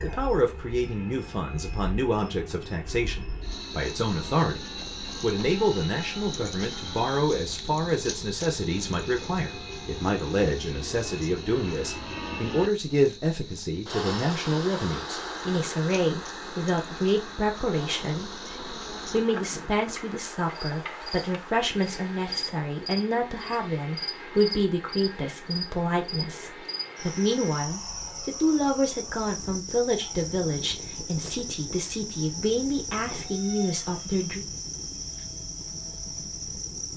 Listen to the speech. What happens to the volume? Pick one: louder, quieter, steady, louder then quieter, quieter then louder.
steady.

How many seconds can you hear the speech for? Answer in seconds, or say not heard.
33 s.